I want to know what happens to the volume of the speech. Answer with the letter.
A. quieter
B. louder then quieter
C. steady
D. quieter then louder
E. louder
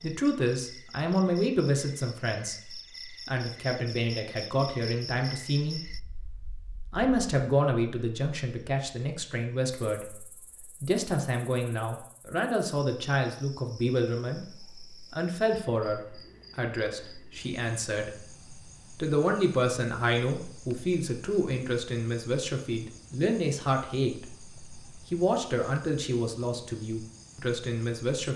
C.